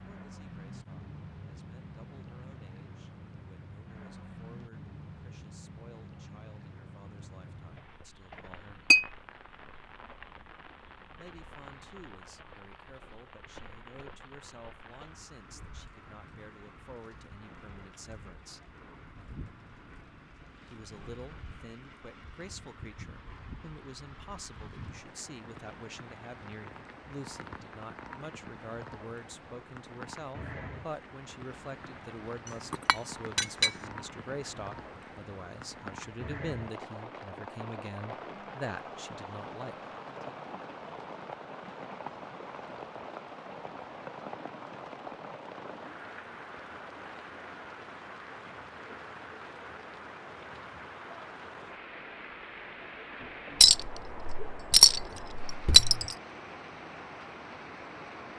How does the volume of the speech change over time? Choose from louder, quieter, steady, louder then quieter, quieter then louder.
louder.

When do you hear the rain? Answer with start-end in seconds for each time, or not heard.
0.0-58.3.